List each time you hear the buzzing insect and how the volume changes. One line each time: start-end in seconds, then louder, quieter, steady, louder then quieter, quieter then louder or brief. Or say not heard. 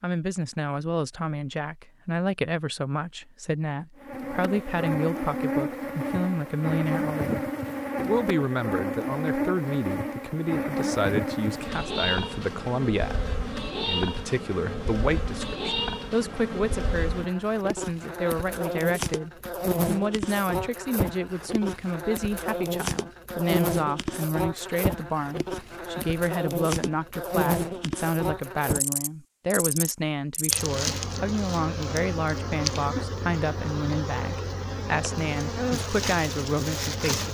4.0-37.2 steady.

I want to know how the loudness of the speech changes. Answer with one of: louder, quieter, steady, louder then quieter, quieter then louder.
steady.